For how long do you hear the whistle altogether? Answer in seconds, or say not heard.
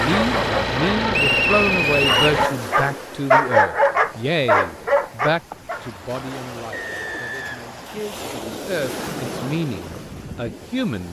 3 s.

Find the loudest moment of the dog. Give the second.
3 s.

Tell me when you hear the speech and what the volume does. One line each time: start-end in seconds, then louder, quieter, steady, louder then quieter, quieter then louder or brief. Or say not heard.
0.0-11.0 quieter then louder.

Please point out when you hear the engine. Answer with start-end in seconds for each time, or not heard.
0.0-2.5.